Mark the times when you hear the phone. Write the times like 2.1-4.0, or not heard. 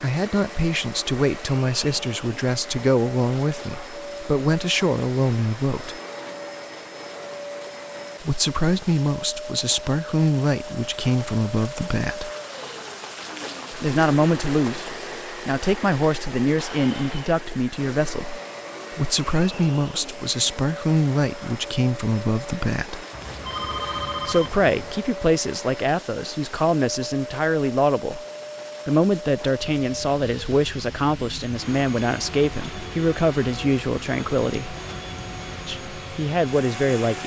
23.1-25.1.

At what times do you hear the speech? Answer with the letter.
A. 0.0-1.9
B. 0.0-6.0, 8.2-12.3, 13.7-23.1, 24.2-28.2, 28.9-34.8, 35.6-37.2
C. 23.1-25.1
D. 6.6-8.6
B.